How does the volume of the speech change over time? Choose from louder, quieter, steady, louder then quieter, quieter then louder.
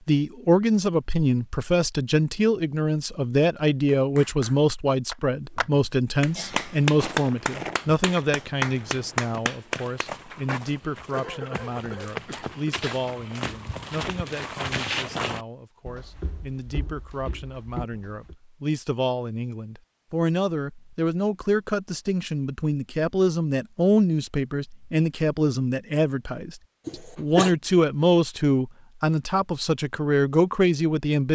quieter then louder.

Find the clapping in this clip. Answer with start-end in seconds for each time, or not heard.
3.9-10.4.